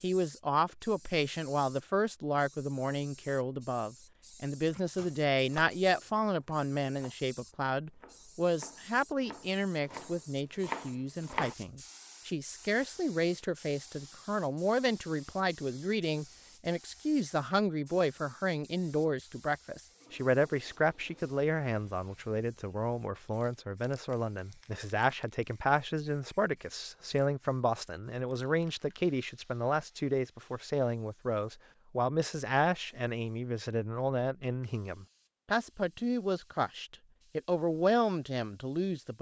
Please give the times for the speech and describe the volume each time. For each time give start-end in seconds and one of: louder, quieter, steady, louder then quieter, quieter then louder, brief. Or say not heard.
0.0-39.1 steady.